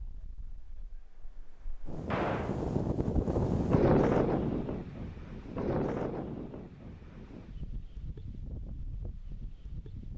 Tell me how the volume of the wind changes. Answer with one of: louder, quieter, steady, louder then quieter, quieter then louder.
louder then quieter.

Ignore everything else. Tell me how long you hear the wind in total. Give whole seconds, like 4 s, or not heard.
10 s.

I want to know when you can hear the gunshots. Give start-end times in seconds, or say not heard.
2.1-2.6.